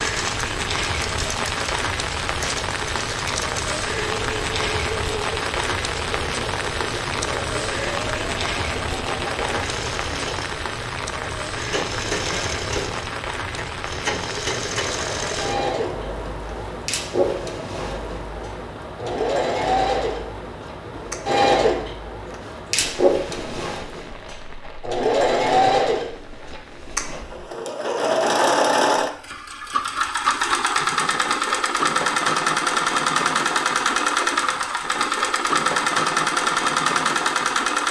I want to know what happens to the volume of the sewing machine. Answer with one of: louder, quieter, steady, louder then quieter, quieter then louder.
louder.